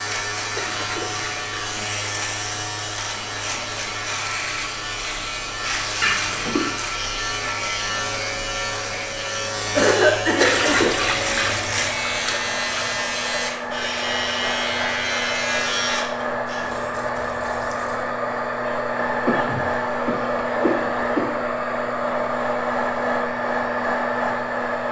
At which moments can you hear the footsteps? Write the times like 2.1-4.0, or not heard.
not heard.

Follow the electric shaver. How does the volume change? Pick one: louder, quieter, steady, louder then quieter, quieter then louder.
steady.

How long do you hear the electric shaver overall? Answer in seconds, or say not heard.
17 s.